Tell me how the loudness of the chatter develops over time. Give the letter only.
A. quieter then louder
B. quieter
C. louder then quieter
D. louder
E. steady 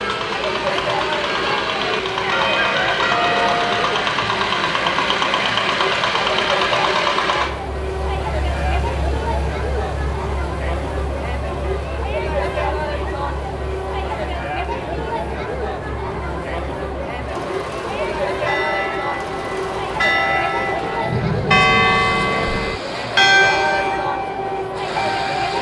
E.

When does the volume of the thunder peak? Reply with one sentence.
The volume of the thunder peaks at 21 seconds.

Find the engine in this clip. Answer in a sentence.
You can hear the engine from 0.0 to 25.5 s.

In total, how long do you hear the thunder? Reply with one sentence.
You can hear the thunder for 2 seconds altogether.